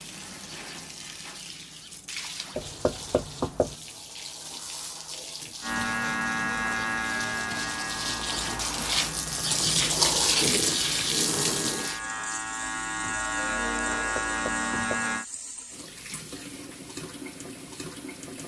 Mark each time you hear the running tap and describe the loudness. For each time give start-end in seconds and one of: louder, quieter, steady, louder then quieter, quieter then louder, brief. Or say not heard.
0.0-18.4 louder then quieter.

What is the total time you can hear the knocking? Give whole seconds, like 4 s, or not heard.
2 s.